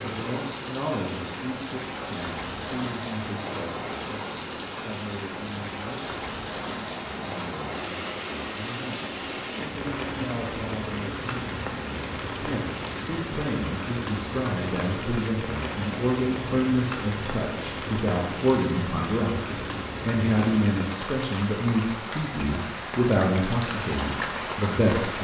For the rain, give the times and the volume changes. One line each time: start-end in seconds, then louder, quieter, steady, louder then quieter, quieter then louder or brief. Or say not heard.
0.0-25.1 steady.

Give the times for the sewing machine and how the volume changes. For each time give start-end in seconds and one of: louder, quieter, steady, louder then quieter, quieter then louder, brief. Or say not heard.
not heard.